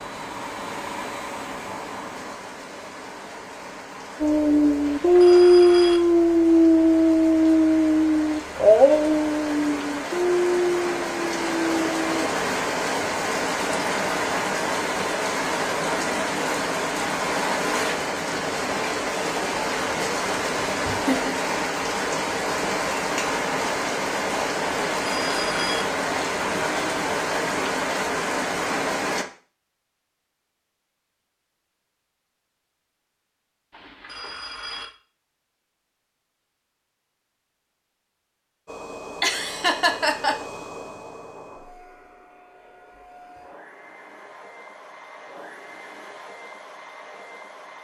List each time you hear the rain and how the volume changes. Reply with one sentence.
The rain can be heard from 0.0 to 29.2 s, getting louder.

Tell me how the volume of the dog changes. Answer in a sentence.
The loudness of the dog goes down.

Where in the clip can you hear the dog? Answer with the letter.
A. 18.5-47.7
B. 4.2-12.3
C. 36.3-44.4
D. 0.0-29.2
B.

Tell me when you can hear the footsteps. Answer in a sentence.
You can't hear the footsteps here.